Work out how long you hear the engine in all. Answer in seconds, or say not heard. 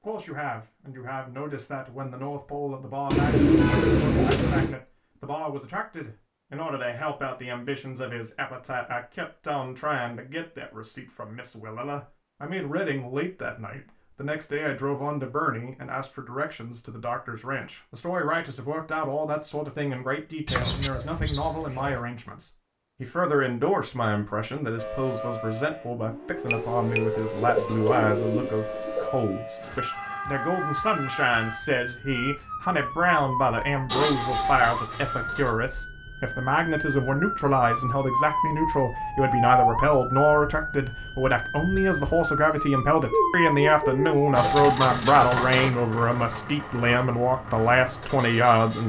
6 s.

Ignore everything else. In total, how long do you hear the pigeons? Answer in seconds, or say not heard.
7 s.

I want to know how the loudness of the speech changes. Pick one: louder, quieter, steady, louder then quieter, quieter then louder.
louder.